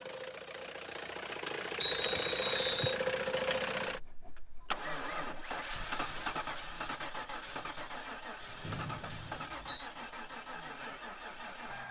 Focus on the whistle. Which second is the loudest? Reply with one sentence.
The loudest moment of the whistle is at 2 seconds.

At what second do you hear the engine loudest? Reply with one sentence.
The loudest moment of the engine is at 3 seconds.